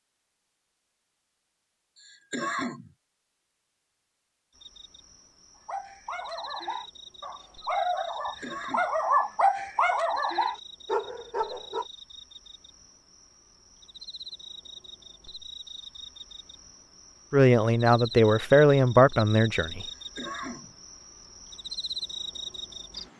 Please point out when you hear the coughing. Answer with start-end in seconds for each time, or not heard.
1.9-2.9, 8.2-8.8, 19.8-20.8.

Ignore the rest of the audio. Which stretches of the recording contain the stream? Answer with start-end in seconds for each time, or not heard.
not heard.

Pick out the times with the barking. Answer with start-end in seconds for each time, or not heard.
5.7-11.8.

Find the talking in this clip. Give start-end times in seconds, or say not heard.
17.3-19.9.